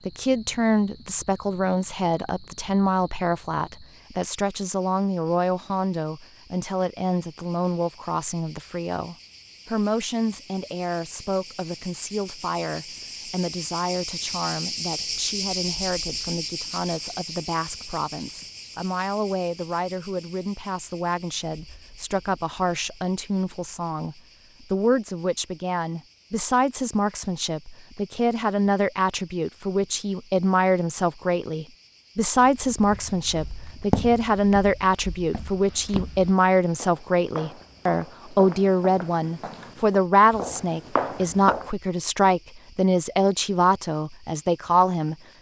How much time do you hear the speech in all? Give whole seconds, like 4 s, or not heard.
45 s.